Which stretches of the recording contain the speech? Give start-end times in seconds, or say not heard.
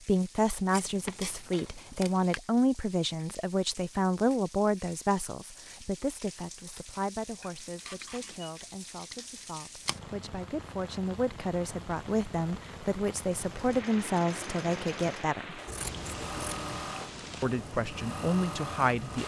0.1-15.6, 17.4-19.2.